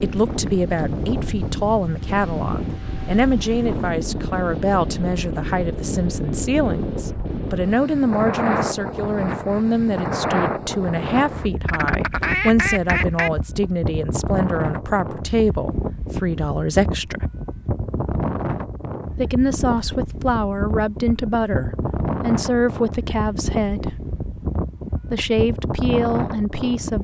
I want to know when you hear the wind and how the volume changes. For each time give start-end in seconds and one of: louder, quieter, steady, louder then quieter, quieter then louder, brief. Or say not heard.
0.0-26.9 steady.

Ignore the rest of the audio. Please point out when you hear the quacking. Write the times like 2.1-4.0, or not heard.
11.7-13.3.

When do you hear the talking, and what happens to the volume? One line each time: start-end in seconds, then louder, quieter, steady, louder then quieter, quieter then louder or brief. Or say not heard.
0.0-17.2 steady
19.1-24.0 steady
25.1-26.9 brief.